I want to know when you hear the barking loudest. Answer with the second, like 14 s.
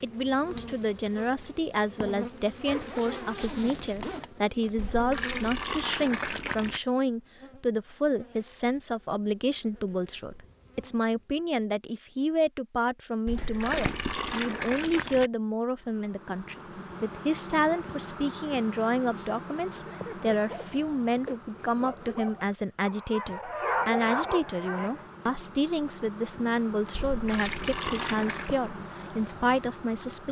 24 s.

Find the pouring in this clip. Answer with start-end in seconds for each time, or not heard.
4.8-6.8, 13.2-15.3, 26.9-28.6.